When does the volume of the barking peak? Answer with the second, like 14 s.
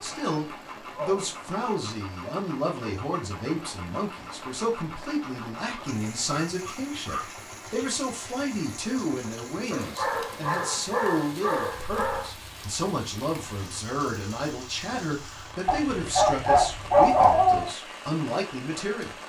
17 s.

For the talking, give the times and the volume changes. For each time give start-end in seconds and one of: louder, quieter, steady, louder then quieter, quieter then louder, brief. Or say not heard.
0.0-19.1 steady.